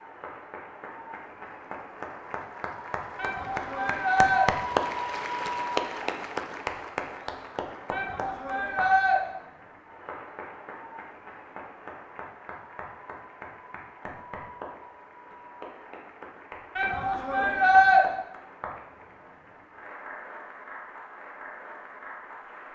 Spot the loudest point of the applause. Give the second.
5 s.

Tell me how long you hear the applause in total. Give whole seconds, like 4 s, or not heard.
23 s.